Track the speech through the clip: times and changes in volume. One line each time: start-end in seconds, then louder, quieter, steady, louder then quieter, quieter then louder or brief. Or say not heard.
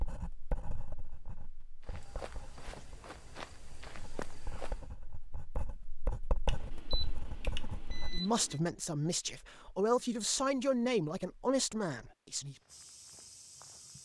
8.1-12.6 steady.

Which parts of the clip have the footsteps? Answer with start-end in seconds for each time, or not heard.
1.8-4.9, 12.4-14.0.